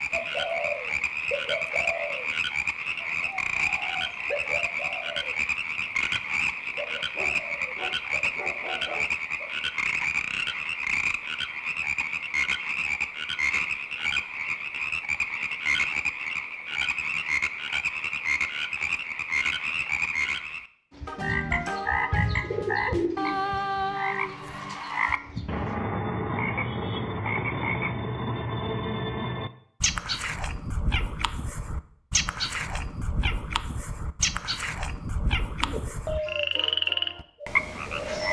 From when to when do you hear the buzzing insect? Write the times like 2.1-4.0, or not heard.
not heard.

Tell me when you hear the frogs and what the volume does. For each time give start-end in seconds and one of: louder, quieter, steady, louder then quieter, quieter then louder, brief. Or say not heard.
0.0-38.2 steady.